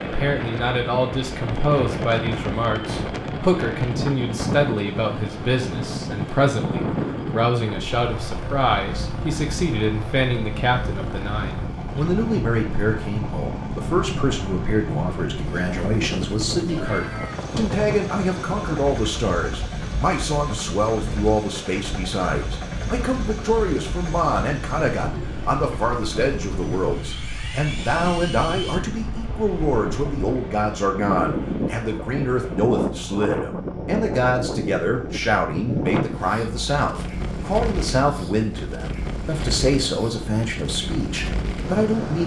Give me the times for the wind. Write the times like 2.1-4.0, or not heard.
0.0-42.2.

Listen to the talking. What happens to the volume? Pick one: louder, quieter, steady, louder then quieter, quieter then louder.
steady.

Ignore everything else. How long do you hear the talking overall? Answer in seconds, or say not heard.
42 s.